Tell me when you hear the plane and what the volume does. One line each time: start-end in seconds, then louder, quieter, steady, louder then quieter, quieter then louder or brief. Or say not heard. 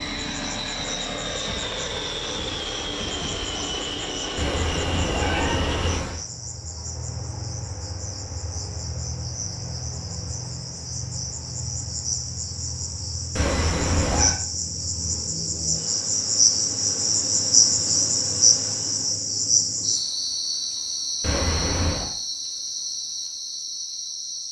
0.0-19.2 quieter.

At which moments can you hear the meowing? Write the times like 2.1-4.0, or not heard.
4.3-6.2, 13.3-14.3, 21.2-22.1.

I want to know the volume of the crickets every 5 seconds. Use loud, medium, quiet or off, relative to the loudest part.
quiet, quiet, medium, loud, medium.